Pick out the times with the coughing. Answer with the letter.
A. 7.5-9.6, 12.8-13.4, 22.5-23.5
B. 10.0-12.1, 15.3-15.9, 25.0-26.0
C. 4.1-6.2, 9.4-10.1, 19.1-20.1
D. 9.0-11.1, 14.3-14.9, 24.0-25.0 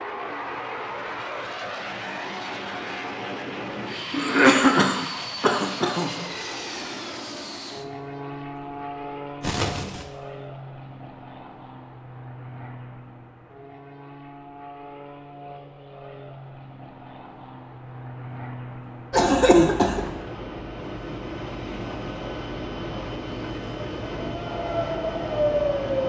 C.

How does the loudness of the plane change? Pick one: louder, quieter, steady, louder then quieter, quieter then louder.
quieter then louder.